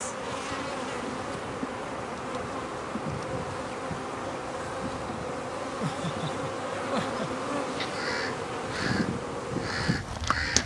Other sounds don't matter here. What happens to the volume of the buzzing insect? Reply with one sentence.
The loudness of the buzzing insect stays about the same.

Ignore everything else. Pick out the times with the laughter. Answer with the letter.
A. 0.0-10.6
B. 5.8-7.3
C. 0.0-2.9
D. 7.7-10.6
B.